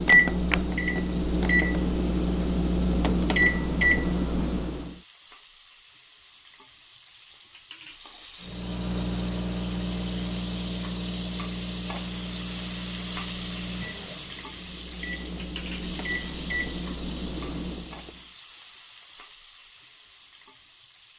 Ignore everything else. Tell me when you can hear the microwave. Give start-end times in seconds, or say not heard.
0.0-5.0, 8.4-18.2.